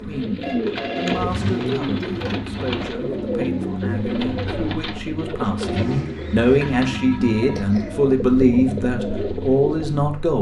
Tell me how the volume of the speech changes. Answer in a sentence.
The loudness of the speech goes up.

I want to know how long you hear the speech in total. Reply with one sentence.
You can hear the speech for 10 seconds altogether.